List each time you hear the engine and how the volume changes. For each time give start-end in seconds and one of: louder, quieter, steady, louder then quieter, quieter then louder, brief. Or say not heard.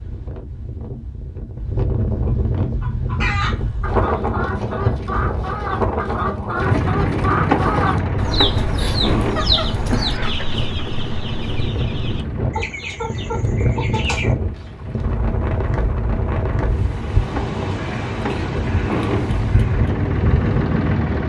6.5-21.2 quieter then louder.